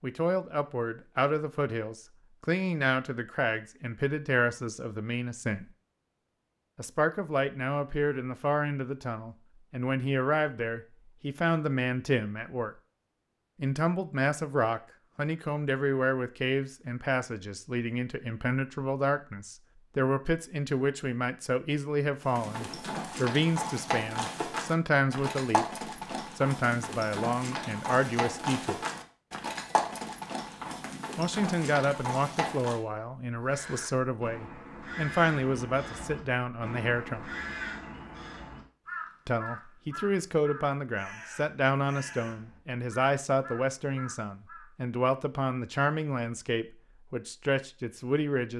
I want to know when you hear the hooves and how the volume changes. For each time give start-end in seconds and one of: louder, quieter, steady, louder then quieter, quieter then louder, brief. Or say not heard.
22.2-32.8 steady.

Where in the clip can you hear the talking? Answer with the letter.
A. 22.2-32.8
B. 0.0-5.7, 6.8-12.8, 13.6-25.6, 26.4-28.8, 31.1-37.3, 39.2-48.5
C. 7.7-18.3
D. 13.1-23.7
B.